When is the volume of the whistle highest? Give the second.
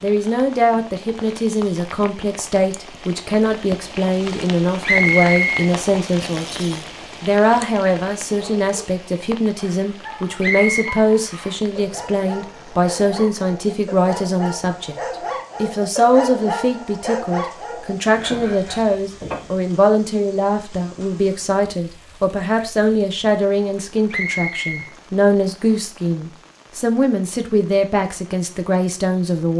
5 s.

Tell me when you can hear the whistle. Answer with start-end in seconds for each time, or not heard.
4.8-5.7, 10.4-10.9, 24.1-24.9.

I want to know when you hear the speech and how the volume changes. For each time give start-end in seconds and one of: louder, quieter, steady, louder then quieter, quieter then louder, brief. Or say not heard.
0.0-15.0 steady
15.6-29.5 steady.